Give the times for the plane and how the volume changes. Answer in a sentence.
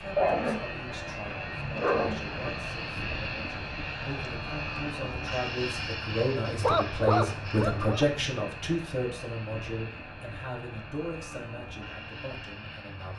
You can hear the plane from 0.0 to 13.1 s, getting quieter.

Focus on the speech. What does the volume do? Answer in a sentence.
The loudness of the speech goes up, then down.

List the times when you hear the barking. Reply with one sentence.
The barking can be heard from 0.1 to 2.6 s and from 6.6 to 8.1 s.